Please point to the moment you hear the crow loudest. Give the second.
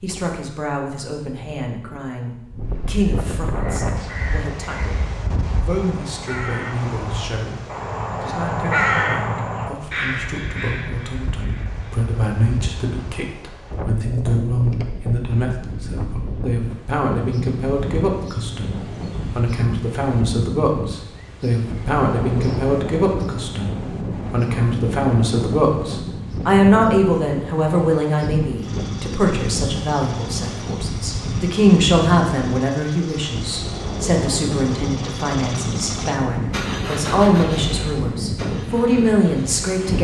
9 s.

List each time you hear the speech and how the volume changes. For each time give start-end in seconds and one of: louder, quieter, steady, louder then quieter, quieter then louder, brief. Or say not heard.
0.0-39.9 louder.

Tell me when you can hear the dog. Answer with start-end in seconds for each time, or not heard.
not heard.